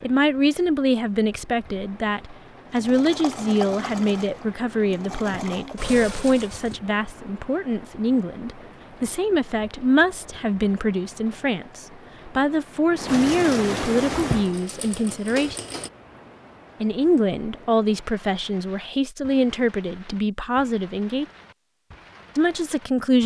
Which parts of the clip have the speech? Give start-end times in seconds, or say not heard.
0.0-15.6, 16.8-21.2, 22.4-23.2.